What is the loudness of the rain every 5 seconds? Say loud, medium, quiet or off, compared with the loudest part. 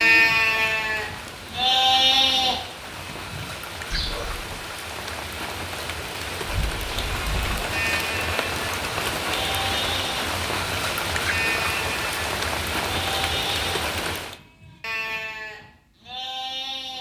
medium, loud, loud, off.